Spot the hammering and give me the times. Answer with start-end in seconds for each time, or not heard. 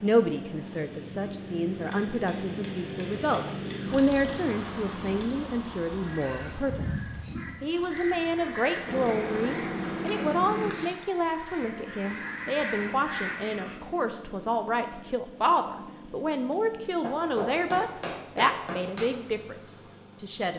1.9-3.8, 8.8-10.9, 17.0-19.1.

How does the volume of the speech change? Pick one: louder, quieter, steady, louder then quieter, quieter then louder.
steady.